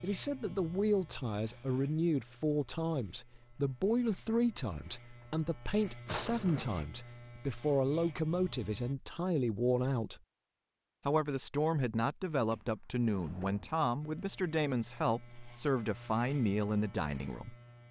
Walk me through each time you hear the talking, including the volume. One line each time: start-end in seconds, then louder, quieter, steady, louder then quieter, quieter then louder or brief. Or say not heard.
0.0-10.2 steady
11.1-17.6 steady.